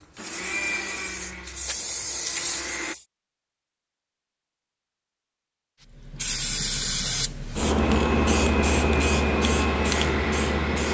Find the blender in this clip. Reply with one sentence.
The blender can be heard from 0.0 to 3.0 s and from 8.0 to 10.8 s.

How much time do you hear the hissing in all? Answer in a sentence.
The hissing can be heard for 8 seconds in total.